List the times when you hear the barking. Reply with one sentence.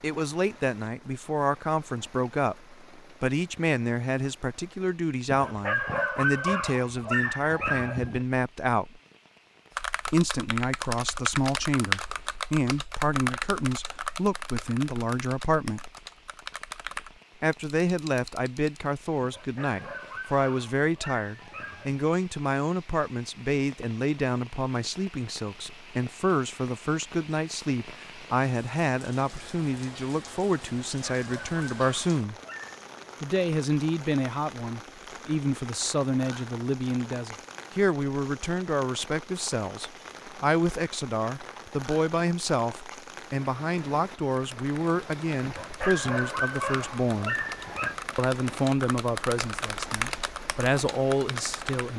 You can hear the barking from 5.2 to 8.2 s, from 19.2 to 22.0 s, from 30.9 to 32.9 s and from 45.5 to 48.0 s.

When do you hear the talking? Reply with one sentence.
The talking can be heard from 0.0 to 9.0 s, from 10.1 to 15.9 s, from 17.4 to 32.4 s, from 33.2 to 47.4 s and from 48.1 to 51.9 s.